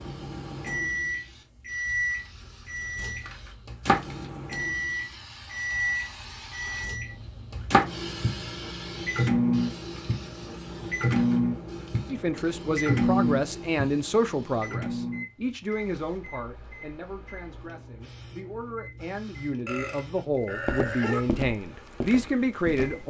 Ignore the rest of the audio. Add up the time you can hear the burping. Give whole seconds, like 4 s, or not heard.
2 s.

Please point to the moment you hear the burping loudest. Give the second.
21 s.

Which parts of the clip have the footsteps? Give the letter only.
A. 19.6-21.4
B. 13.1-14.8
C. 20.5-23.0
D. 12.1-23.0
C.